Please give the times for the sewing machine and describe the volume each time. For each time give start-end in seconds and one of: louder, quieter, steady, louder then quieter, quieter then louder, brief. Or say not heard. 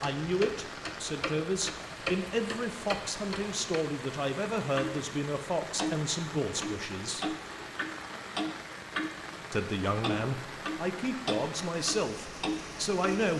not heard.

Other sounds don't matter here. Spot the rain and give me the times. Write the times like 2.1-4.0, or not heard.
0.0-13.3.